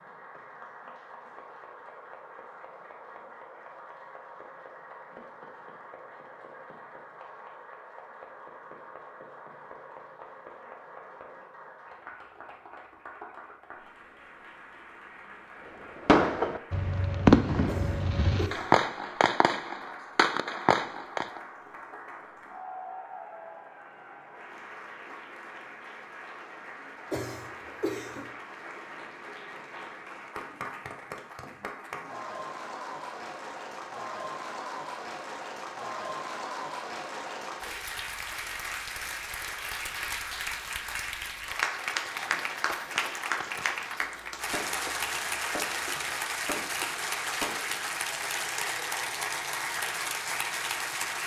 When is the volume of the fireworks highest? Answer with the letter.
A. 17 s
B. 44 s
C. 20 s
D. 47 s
A.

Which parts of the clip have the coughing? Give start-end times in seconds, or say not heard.
17.6-18.9, 27.1-28.3.